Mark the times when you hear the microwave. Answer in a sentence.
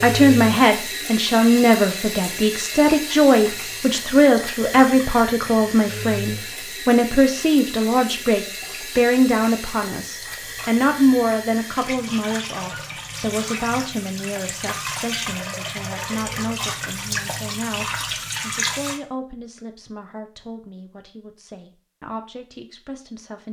You can't hear the microwave here.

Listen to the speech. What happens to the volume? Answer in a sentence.
The volume of the speech goes down.